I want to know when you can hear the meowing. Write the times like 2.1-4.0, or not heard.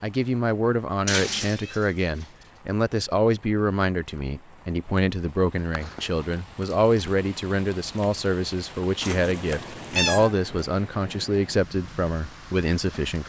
1.1-2.2, 5.8-6.3, 9.0-10.3.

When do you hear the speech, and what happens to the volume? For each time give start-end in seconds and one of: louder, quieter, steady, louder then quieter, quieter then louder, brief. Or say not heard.
0.0-13.2 steady.